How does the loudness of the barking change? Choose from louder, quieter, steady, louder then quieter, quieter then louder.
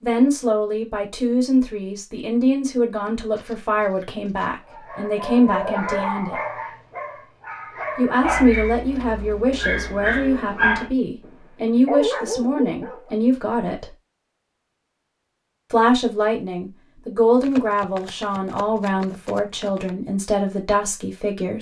quieter then louder.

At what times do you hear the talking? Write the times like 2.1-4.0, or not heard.
0.0-6.3, 8.0-13.8, 15.7-21.5.